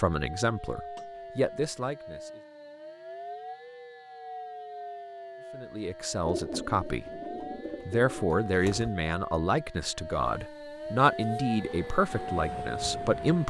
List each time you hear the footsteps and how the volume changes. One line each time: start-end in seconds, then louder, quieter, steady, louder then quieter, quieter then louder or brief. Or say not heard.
not heard.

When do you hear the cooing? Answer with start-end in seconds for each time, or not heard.
6.2-8.9.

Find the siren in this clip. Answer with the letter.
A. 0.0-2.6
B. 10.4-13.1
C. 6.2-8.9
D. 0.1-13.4
D.